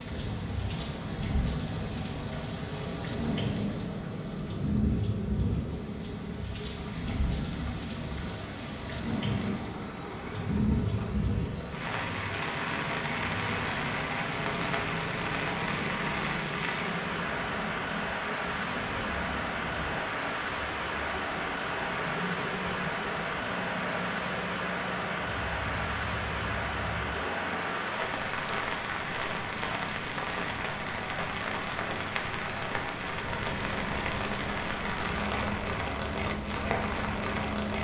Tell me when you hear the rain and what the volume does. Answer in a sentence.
You can hear the rain from 0.0 to 37.7 s, at a steady volume.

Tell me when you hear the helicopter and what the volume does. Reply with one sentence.
You can hear the helicopter from 0.0 to 27.9 s, at a steady volume; and from 33.2 to 37.7 s, at a steady volume.